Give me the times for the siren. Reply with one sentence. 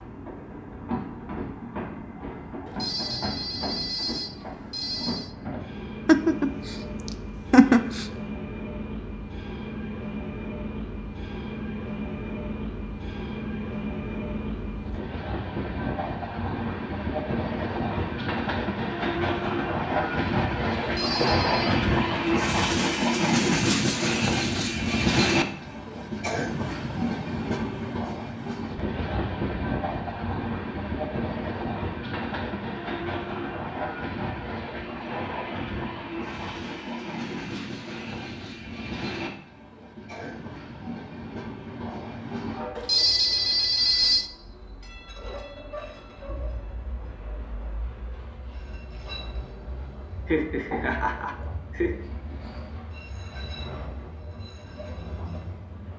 The siren can't be heard in this clip.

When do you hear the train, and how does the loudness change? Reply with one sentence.
You can hear the train from 0.0 to 55.9 s, getting louder then quieter.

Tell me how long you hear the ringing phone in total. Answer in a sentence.
The ringing phone can be heard for 5 seconds in total.